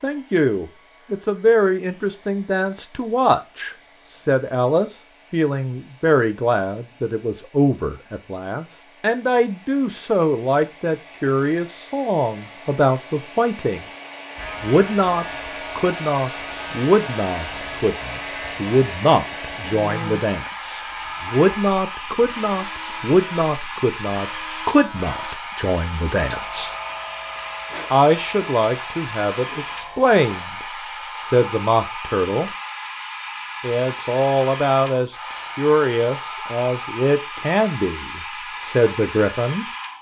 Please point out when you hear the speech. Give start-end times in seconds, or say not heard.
0.0-13.8, 14.6-26.8, 27.9-32.5, 33.6-39.6.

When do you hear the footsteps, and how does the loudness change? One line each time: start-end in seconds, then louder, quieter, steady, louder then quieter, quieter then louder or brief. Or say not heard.
not heard.